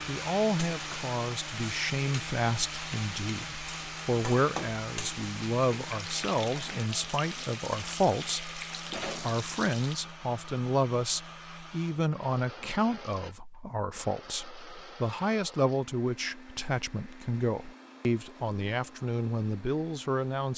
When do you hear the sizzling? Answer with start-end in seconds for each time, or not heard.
0.0-9.9.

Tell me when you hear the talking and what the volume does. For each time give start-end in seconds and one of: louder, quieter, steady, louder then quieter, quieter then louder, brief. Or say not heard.
0.1-20.5 steady.